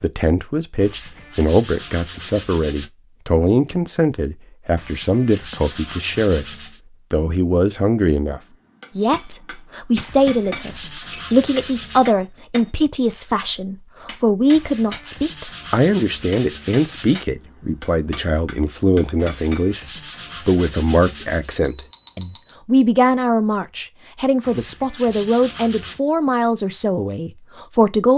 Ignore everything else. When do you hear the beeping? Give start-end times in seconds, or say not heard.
21.4-22.6.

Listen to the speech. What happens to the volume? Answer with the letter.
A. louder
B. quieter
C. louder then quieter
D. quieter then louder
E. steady
E.